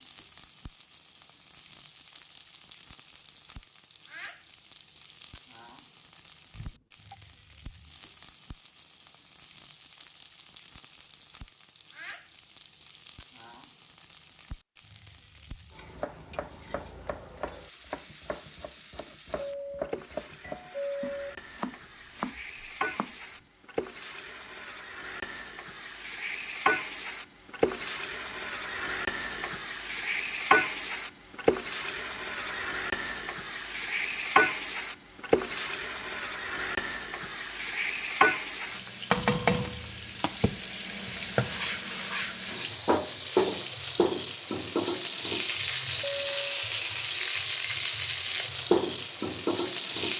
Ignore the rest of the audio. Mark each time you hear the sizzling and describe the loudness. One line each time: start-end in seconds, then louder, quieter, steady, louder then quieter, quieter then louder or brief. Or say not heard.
0.0-50.1 louder.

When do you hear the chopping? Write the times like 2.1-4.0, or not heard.
15.9-23.1.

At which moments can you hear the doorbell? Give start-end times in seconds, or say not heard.
6.5-7.2, 19.4-21.4, 46.0-46.7.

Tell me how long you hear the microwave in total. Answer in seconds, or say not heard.
not heard.